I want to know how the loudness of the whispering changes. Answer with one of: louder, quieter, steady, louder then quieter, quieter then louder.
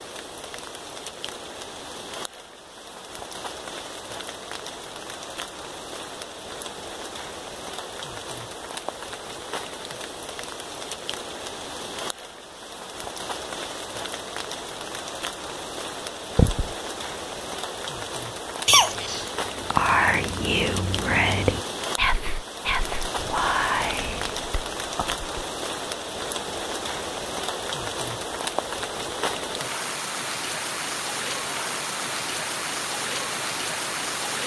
quieter.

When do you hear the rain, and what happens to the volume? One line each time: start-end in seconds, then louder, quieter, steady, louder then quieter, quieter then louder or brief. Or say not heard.
0.0-34.4 louder.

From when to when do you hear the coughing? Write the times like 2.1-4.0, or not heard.
18.6-19.3.